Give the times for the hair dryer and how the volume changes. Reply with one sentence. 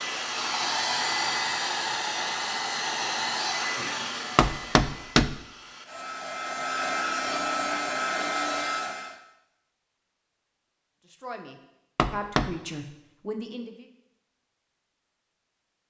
You can hear the hair dryer from 0.0 to 9.2 s, getting quieter then louder.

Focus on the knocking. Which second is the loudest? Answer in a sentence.
The volume of the knocking peaks at 5 seconds.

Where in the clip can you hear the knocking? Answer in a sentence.
The knocking can be heard from 4.3 to 5.4 s and from 11.9 to 12.6 s.